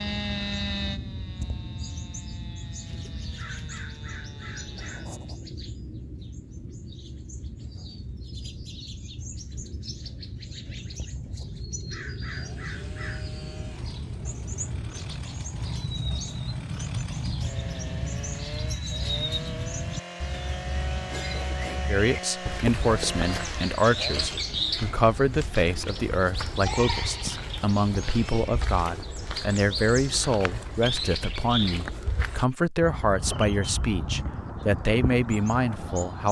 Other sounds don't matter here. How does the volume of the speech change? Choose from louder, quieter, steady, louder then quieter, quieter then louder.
steady.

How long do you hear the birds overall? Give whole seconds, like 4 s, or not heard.
36 s.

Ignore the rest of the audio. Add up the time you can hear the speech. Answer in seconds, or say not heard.
14 s.